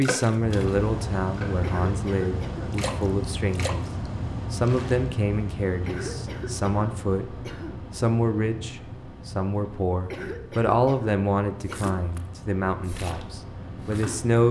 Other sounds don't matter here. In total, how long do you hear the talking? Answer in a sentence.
The talking can be heard for 14 seconds in total.